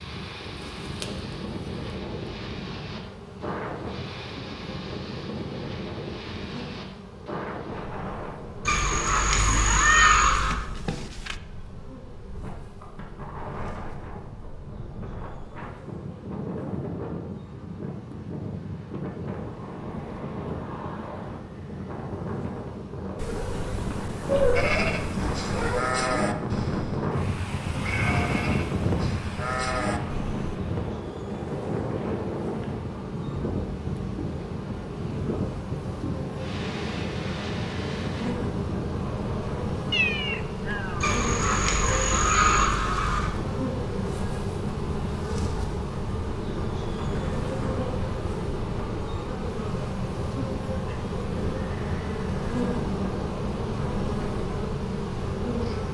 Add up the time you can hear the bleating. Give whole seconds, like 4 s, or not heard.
6 s.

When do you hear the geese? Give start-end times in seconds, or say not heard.
8.7-10.6, 41.0-43.3.